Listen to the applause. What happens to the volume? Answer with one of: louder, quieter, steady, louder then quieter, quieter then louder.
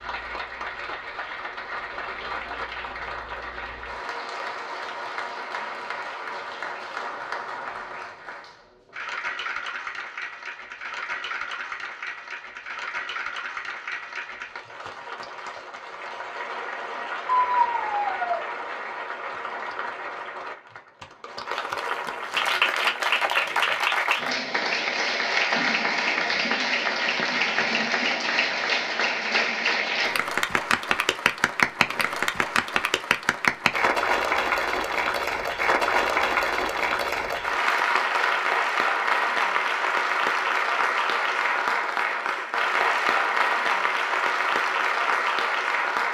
louder.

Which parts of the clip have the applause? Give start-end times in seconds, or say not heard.
0.0-46.0.